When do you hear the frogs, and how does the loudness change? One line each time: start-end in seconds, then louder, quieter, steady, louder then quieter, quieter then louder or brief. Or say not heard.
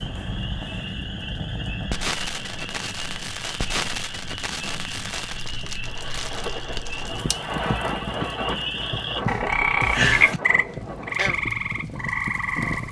0.0-12.8 louder.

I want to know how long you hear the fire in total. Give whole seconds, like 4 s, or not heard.
13 s.